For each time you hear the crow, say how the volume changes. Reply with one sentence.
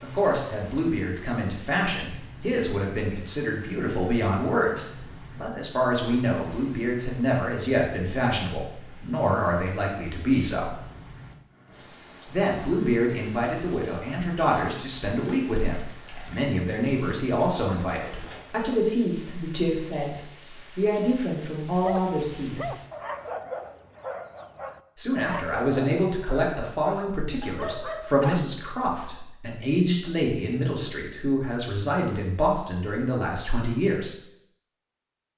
You can't hear the crow here.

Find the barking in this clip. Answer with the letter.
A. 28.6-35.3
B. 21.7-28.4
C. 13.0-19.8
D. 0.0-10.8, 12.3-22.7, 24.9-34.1
B.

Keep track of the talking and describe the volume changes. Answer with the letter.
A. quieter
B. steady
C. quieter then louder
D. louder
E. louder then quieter
B.